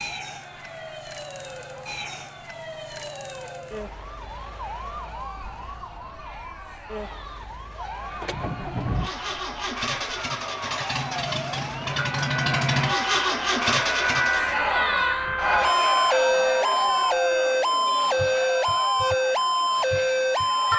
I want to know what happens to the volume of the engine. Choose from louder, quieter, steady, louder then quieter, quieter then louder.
louder.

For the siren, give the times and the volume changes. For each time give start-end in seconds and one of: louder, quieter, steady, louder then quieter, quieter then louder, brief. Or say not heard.
0.0-20.7 louder.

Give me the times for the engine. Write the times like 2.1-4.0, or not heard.
8.1-14.6.